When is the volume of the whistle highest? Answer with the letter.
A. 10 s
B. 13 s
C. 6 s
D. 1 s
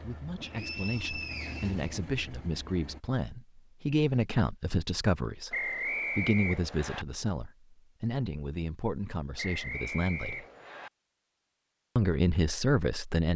C.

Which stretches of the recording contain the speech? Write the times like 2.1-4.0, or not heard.
0.0-10.4, 11.9-13.3.